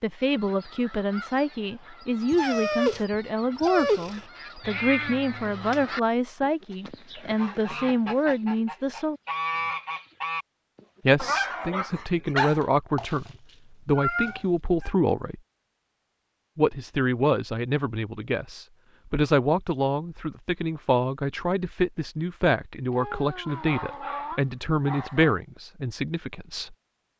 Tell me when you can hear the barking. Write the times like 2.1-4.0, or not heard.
2.3-4.2, 11.2-12.7, 23.4-25.4.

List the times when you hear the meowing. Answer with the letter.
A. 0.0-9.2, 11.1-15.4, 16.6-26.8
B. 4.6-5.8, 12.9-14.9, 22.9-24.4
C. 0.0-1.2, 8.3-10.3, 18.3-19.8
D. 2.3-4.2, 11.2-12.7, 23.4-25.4
B.